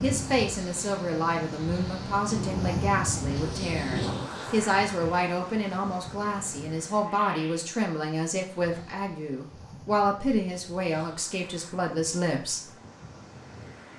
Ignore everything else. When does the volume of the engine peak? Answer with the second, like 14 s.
4 s.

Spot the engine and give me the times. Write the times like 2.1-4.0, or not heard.
0.0-4.3.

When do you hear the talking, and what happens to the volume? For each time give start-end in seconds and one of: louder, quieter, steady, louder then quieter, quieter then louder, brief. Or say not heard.
0.0-12.7 steady.